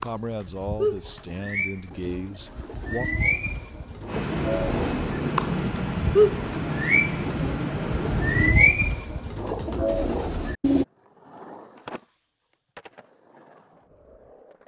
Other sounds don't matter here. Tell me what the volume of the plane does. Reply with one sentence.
The loudness of the plane stays about the same.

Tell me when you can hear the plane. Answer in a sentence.
You can hear the plane from 4.0 to 8.6 s.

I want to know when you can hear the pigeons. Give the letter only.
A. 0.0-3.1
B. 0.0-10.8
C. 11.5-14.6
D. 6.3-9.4
B.